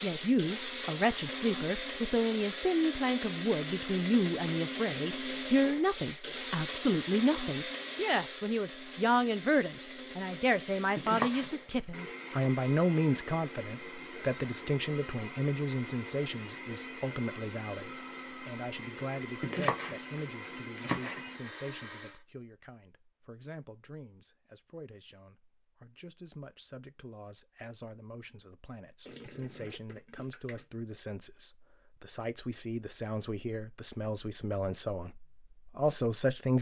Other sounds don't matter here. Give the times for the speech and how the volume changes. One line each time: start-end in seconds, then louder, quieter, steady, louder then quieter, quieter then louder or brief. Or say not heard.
0.0-36.5 quieter then louder.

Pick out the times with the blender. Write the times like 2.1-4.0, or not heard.
0.0-22.2.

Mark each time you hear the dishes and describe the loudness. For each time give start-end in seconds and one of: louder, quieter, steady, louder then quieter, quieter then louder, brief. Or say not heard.
not heard.